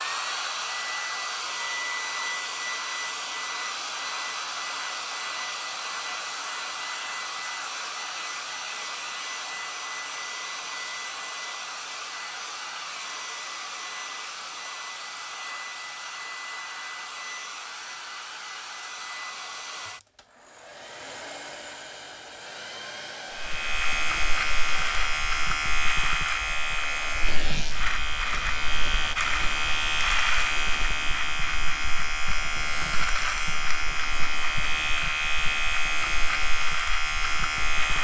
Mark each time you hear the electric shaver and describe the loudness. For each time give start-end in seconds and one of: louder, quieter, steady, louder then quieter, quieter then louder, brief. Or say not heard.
23.4-37.9 steady.